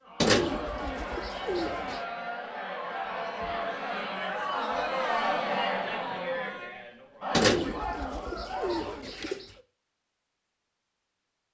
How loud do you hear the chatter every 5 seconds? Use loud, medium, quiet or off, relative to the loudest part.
loud, loud, off.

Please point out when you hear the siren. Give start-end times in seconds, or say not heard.
not heard.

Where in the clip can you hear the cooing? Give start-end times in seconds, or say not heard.
0.2-2.0, 7.3-9.4.